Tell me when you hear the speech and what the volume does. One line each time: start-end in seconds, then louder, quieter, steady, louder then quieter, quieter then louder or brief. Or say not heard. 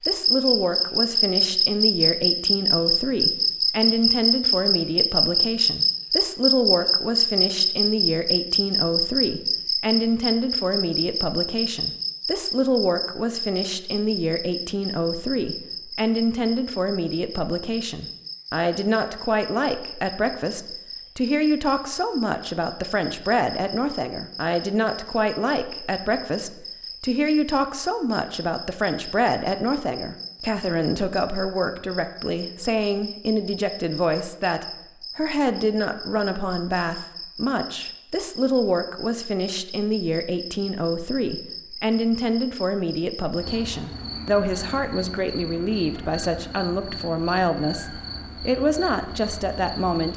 0.1-50.1 steady.